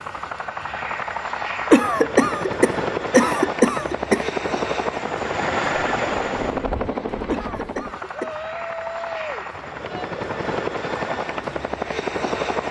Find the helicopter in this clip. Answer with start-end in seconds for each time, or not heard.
0.0-12.6.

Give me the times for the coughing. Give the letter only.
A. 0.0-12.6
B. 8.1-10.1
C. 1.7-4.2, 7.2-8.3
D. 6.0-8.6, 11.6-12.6
C.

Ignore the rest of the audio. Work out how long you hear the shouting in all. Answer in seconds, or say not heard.
2 s.